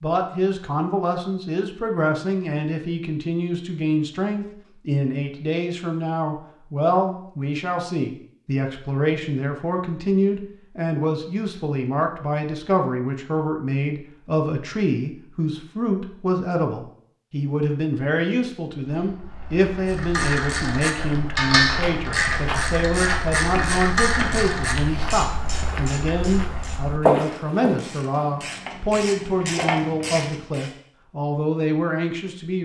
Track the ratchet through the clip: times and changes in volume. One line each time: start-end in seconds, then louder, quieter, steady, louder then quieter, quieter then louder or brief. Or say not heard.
19.9-30.7 quieter then louder.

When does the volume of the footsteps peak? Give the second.
27 s.